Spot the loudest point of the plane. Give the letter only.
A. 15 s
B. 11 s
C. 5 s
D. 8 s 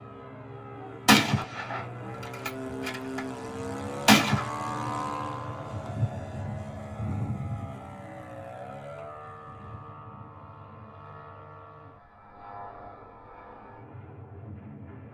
C.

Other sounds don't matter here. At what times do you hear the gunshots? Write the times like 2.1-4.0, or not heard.
1.1-3.2, 4.0-4.5.